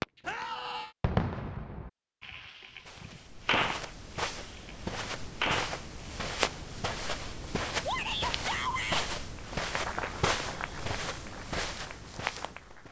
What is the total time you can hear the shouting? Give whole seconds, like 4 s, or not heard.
2 s.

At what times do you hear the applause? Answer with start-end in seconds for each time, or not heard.
9.3-12.8.